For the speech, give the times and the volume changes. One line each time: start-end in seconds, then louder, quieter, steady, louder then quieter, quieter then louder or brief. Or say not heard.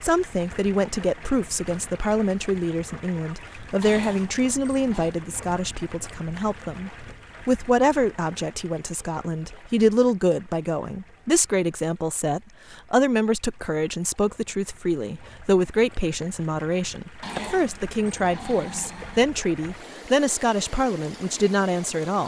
0.0-22.2 steady.